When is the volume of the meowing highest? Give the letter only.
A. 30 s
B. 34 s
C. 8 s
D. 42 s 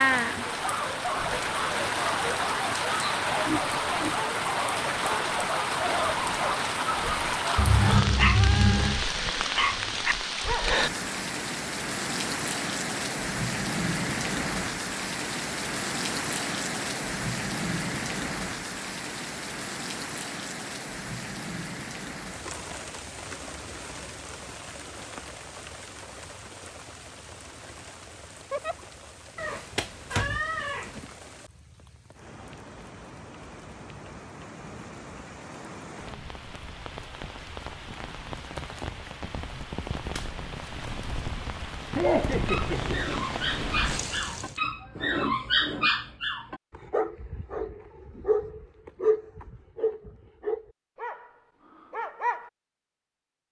C.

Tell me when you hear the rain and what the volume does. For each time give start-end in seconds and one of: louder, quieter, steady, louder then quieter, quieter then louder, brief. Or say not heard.
0.0-44.6 quieter then louder.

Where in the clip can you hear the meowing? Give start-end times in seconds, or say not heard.
7.5-9.1, 29.4-31.1, 42.6-43.8.